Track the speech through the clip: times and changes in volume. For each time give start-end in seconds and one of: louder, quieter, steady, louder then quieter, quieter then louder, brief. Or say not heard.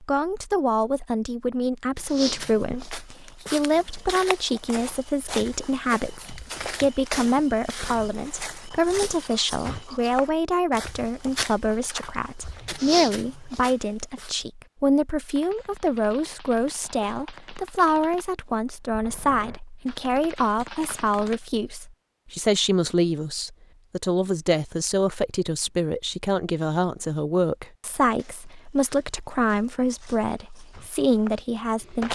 0.0-32.1 steady.